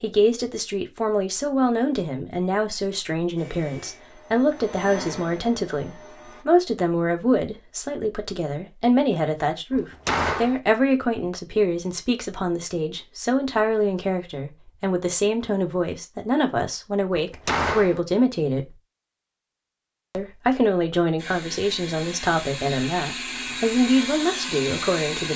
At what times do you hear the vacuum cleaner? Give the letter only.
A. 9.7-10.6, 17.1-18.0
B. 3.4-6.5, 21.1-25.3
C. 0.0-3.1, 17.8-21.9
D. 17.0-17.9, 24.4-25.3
B.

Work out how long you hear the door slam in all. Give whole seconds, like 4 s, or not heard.
2 s.